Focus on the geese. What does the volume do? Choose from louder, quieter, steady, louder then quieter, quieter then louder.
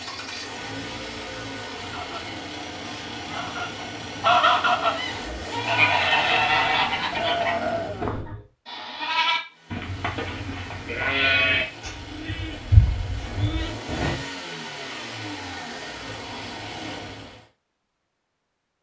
louder then quieter.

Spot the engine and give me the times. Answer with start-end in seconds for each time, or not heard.
0.0-8.2, 9.5-17.4.